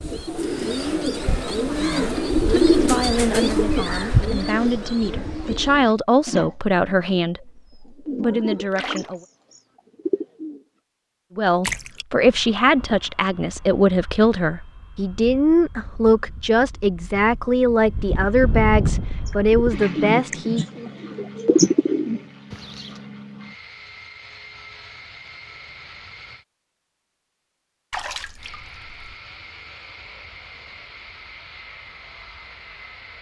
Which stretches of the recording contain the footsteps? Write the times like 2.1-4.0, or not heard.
not heard.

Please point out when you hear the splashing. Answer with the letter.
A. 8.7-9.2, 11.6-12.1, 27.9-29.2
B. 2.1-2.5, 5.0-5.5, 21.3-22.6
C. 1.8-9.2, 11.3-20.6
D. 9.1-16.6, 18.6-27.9
A.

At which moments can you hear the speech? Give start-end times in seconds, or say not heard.
1.8-9.2, 11.3-20.6.